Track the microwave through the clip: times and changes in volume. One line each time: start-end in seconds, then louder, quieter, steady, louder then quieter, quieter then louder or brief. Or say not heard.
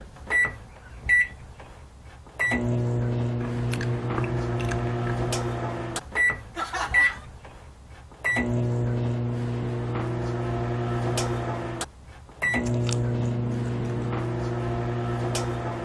0.0-15.8 steady.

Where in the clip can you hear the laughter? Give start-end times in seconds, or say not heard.
6.5-7.2.